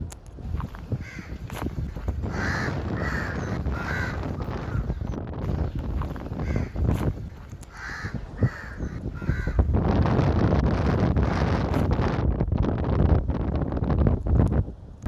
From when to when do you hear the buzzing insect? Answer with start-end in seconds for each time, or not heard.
not heard.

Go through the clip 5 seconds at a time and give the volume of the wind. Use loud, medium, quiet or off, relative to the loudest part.
medium, medium, loud.